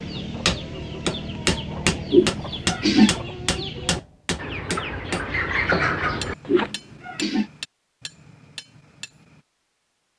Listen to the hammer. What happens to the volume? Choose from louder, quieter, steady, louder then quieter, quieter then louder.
quieter.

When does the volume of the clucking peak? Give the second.
6 s.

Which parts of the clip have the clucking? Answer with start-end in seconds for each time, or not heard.
0.0-6.7.